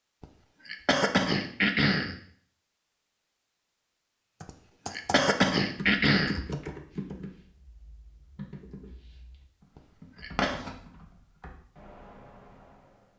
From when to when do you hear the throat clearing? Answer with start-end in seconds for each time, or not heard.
0.2-2.2, 4.5-6.5, 9.8-10.6.